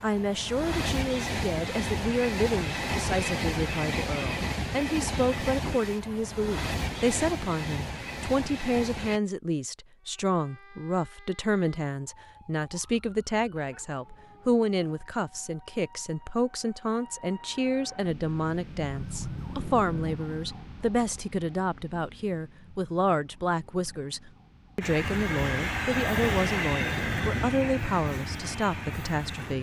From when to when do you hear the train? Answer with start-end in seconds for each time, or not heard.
0.0-9.2, 24.8-29.5.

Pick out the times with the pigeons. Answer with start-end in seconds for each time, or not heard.
not heard.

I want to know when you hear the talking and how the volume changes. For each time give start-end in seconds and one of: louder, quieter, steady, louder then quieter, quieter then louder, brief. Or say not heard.
0.0-29.5 steady.